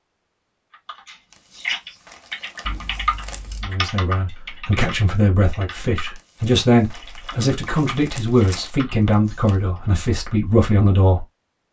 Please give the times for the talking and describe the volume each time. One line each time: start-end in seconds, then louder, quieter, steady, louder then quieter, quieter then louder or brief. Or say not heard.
3.6-11.2 steady.